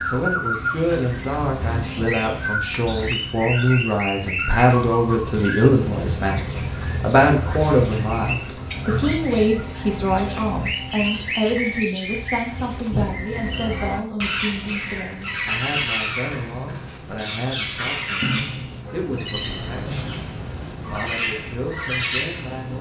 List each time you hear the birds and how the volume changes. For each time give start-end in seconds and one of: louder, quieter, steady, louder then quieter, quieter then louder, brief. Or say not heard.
0.0-22.7 steady.